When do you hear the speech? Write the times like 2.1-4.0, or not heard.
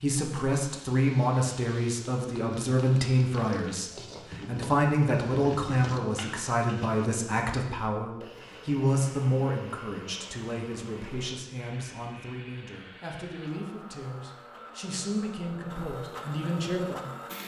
0.0-17.4.